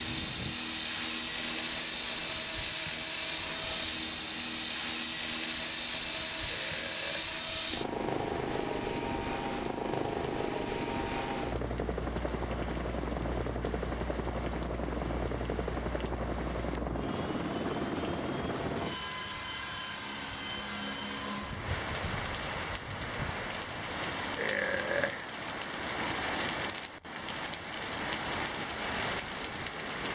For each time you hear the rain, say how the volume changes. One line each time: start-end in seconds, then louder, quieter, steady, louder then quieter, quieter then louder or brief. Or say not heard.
0.0-30.0 louder.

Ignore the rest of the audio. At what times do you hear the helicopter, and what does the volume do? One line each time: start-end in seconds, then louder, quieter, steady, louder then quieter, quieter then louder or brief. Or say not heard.
0.0-21.7 steady.